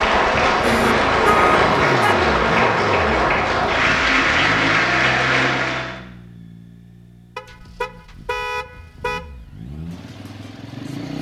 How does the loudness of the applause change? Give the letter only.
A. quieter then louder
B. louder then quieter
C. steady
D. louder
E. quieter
C.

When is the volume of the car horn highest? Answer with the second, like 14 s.
1 s.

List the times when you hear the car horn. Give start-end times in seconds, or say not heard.
0.6-2.2, 7.3-9.2.